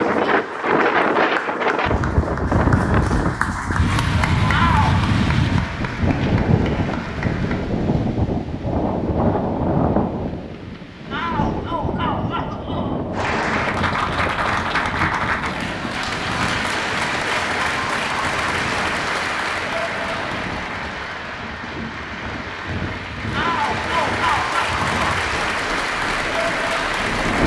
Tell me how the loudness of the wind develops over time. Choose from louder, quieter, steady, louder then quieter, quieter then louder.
quieter.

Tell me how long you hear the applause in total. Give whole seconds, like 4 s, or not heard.
22 s.